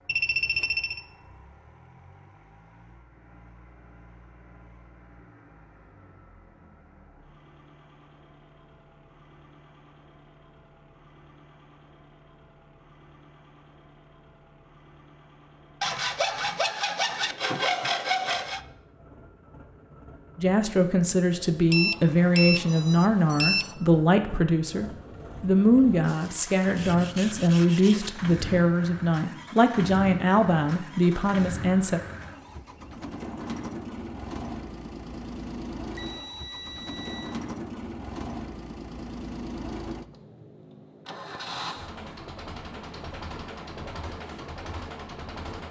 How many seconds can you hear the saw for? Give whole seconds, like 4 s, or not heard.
5 s.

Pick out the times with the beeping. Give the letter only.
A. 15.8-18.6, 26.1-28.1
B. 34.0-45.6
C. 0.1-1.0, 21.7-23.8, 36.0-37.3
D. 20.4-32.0
C.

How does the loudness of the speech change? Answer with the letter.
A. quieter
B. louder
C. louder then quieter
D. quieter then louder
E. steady
E.